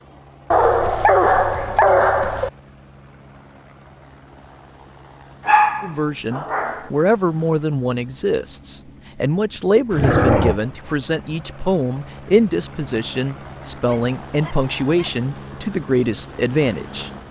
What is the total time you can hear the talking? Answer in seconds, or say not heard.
11 s.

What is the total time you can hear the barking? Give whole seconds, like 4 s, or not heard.
6 s.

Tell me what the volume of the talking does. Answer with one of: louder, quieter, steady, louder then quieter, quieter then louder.
steady.